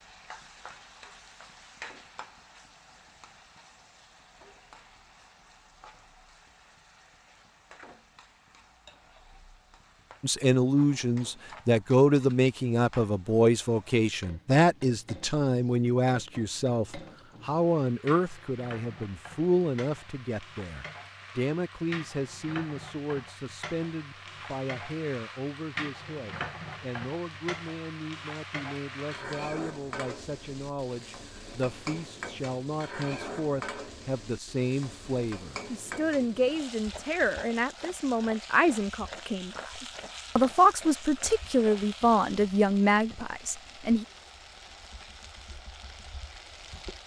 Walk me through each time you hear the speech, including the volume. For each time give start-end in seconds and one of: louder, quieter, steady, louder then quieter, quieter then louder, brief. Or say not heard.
10.2-44.0 quieter then louder.